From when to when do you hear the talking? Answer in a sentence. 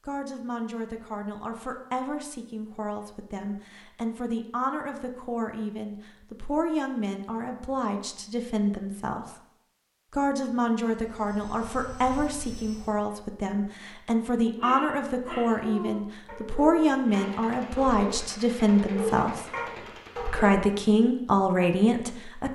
The talking can be heard from 0.1 to 9.3 s, from 10.1 to 19.4 s and from 20.3 to 22.5 s.